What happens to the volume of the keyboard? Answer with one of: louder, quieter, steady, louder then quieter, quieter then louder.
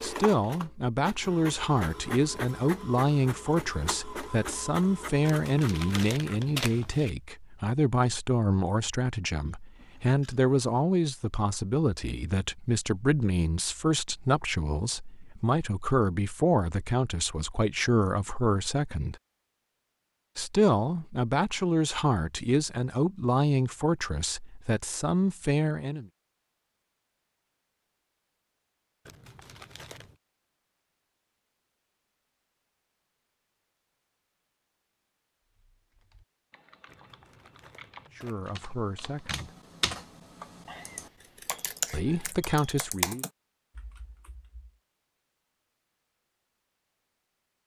louder.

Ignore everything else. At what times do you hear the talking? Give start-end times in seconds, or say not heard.
0.0-19.1, 20.4-26.1, 38.1-39.5, 41.9-43.2.